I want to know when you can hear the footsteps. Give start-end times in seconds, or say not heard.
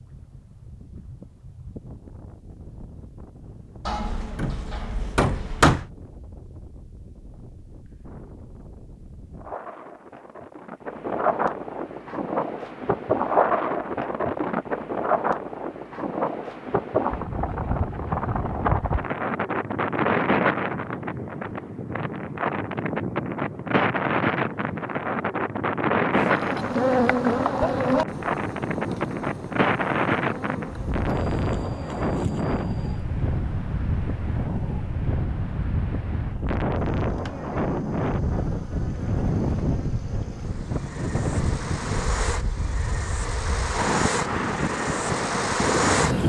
not heard.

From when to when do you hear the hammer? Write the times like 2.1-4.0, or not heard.
3.8-5.8.